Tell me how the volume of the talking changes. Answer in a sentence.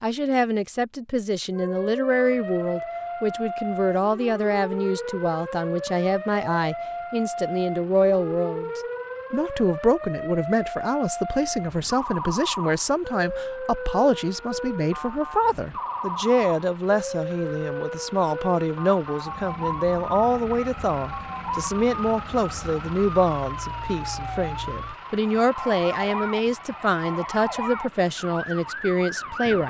The volume of the talking stays about the same.